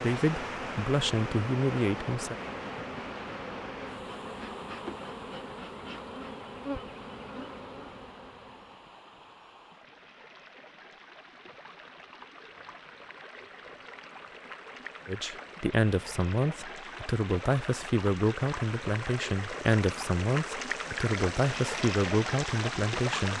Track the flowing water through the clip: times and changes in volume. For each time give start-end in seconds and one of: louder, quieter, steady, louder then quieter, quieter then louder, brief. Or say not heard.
0.0-23.3 quieter then louder.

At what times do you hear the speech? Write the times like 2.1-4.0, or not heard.
0.0-2.4, 15.1-23.3.